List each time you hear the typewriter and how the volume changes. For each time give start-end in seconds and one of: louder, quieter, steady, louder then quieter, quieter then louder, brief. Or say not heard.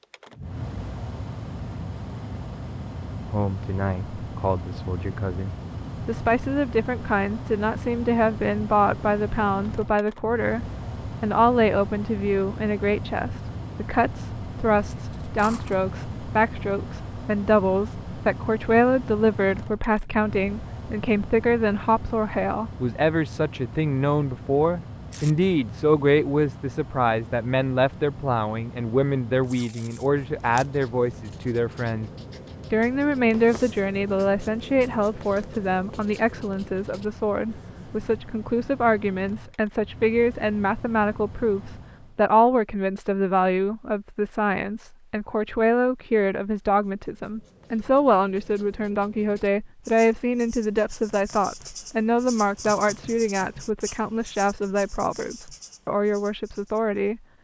not heard.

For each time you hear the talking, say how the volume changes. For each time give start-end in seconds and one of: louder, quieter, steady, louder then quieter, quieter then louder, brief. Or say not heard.
3.2-57.2 steady.